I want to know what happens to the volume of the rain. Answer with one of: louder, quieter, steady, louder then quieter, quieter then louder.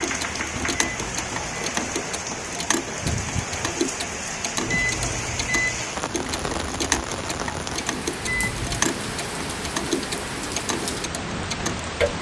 steady.